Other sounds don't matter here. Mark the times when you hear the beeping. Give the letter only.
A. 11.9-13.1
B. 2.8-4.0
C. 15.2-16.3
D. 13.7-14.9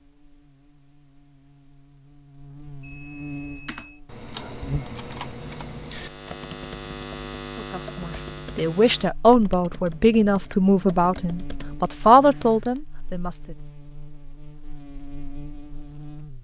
B.